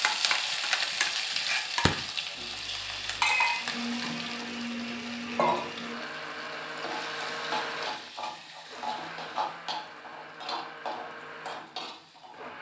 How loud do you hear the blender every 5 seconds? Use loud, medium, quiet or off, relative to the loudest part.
loud, loud, medium.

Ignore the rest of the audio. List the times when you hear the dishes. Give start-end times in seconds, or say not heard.
not heard.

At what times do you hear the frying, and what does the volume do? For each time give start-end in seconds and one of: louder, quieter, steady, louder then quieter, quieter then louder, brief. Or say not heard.
0.0-12.5 quieter.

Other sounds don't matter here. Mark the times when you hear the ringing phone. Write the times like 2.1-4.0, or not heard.
2.4-3.6.